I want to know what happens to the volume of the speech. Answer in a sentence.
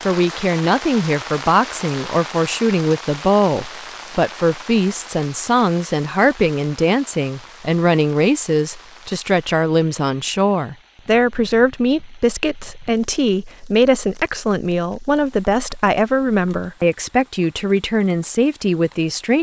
The volume of the speech stays about the same.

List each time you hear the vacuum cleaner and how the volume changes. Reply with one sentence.
The vacuum cleaner can't be heard in this clip.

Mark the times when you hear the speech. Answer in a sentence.
The speech can be heard from 0.1 to 19.3 s.